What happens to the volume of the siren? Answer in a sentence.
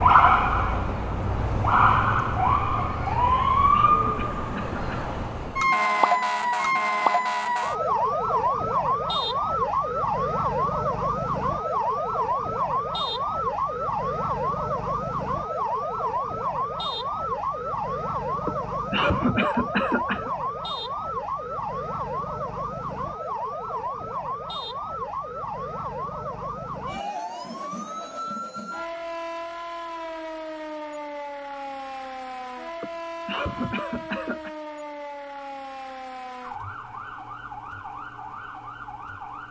The loudness of the siren goes down.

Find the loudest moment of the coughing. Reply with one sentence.
The volume of the coughing peaks at 19 seconds.